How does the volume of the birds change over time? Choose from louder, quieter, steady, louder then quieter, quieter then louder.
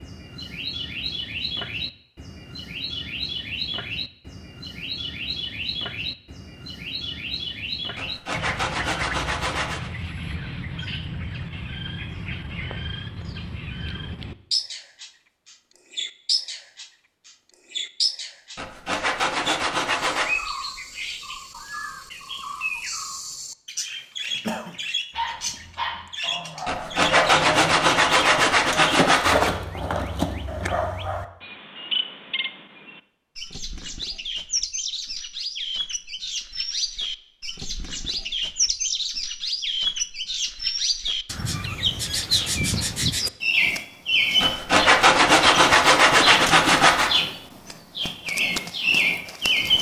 louder.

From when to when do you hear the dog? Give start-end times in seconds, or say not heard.
24.7-31.2.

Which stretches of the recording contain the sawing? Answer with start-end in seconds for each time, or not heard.
8.0-9.9, 18.6-20.4, 26.6-29.5, 44.4-47.2.